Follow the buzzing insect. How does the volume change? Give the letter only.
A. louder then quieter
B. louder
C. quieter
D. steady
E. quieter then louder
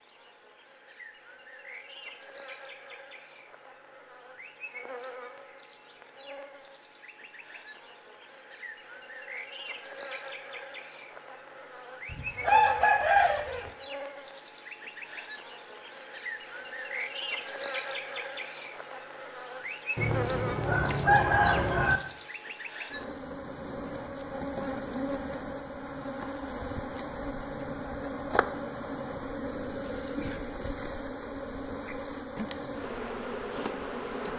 B.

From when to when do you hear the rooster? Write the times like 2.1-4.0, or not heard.
12.1-13.7, 19.9-22.0.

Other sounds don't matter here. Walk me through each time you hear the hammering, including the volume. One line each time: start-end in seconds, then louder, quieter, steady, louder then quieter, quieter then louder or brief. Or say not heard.
not heard.